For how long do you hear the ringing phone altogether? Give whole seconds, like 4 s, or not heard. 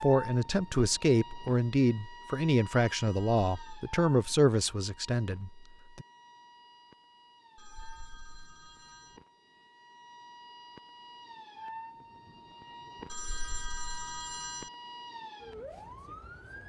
4 s.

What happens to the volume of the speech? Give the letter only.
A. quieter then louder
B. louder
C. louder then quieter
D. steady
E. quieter
E.